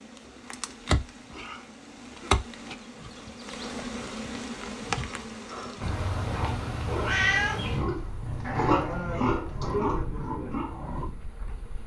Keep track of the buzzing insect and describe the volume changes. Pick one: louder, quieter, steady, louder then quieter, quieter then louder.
quieter.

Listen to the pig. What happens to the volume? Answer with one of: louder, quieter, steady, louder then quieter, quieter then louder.
louder then quieter.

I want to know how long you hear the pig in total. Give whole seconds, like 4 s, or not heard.
6 s.